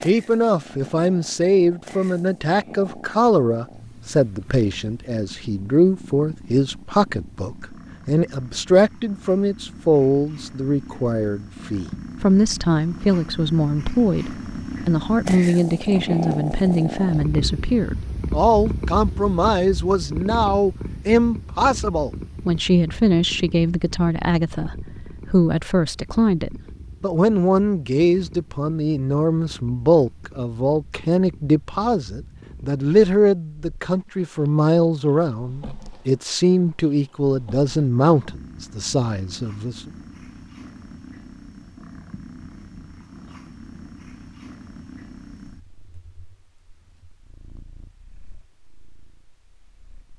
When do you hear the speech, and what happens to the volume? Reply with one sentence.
You can hear the speech from 0.0 to 39.9 s, at a steady volume.